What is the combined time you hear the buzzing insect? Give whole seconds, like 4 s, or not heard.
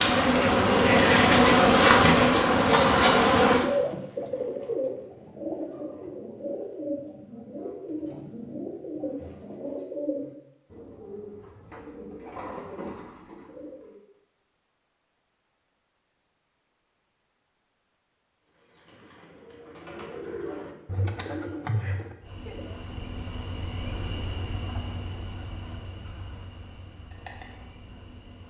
10 s.